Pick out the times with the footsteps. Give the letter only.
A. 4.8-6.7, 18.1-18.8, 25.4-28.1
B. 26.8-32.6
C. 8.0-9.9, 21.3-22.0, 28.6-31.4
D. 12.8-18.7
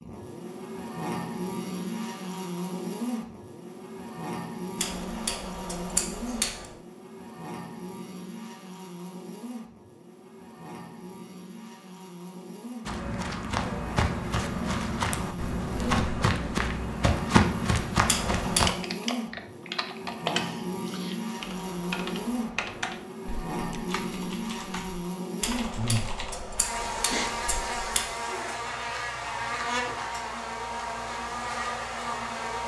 D.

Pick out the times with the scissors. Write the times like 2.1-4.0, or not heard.
4.8-6.7, 18.1-18.8, 25.4-28.1.